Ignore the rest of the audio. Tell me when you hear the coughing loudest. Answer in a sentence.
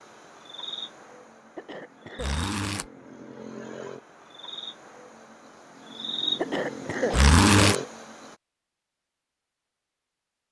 The volume of the coughing peaks at 7 seconds.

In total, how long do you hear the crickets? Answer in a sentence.
You can hear the crickets for 8 seconds altogether.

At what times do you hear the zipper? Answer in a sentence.
The zipper can be heard from 2.1 to 2.9 s and from 7.1 to 7.8 s.